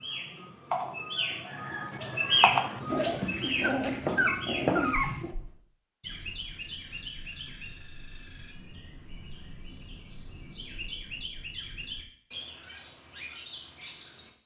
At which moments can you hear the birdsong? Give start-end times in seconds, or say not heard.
0.0-14.3.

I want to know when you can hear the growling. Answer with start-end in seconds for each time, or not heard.
2.9-5.3.